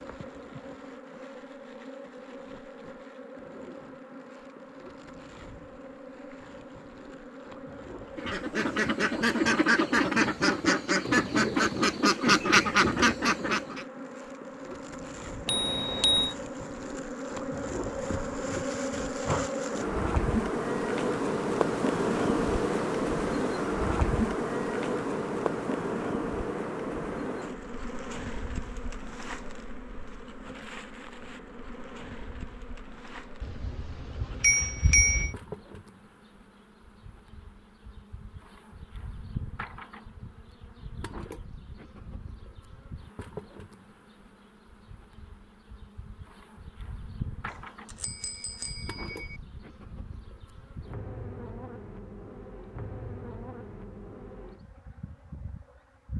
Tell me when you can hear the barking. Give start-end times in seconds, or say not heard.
not heard.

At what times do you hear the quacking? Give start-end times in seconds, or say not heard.
8.2-13.8.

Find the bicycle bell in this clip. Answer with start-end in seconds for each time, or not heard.
15.4-16.4, 33.4-35.4, 47.5-49.4.